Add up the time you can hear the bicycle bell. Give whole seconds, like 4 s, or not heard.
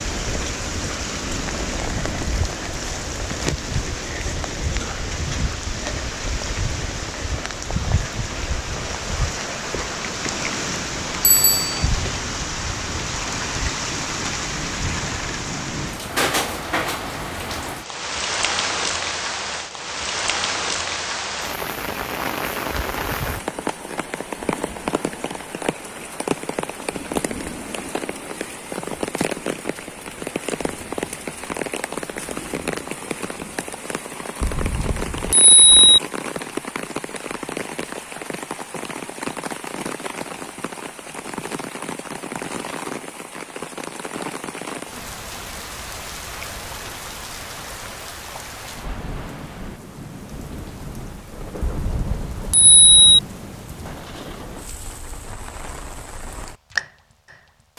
4 s.